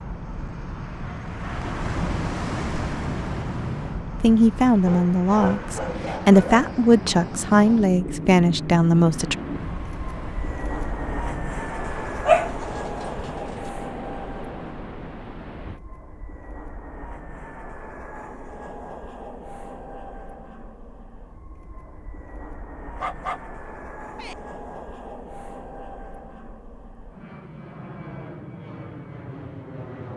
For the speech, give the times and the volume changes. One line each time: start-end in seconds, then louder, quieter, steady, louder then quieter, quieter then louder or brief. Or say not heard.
4.2-9.3 steady.